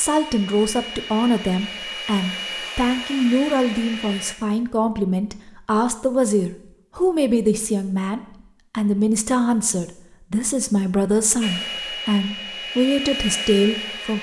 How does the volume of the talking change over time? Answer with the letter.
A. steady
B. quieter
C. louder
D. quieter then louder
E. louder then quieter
A.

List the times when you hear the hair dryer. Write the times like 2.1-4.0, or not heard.
0.0-4.3, 11.4-14.1.